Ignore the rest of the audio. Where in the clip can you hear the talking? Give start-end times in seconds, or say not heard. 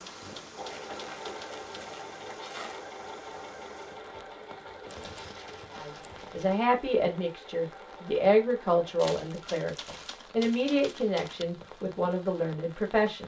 5.8-13.2.